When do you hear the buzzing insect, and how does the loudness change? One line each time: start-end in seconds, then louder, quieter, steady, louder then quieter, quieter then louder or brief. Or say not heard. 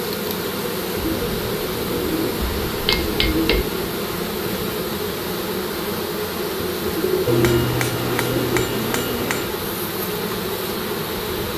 0.0-11.5 steady.